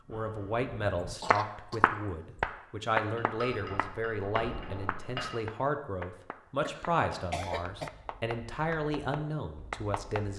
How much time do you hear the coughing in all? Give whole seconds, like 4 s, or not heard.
2 s.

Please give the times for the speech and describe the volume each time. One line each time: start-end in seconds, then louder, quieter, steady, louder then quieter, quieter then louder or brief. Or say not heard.
0.1-10.3 steady.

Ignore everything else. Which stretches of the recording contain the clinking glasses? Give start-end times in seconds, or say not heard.
3.1-5.3.